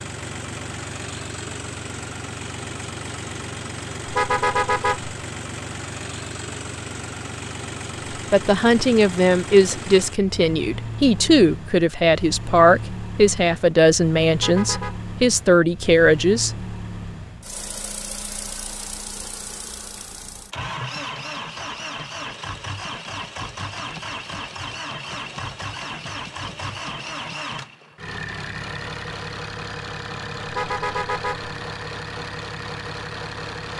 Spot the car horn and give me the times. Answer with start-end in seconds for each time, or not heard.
4.0-5.2, 14.3-15.0, 30.4-31.6.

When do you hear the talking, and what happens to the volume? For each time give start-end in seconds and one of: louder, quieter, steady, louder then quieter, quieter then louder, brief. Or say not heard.
8.3-16.5 steady.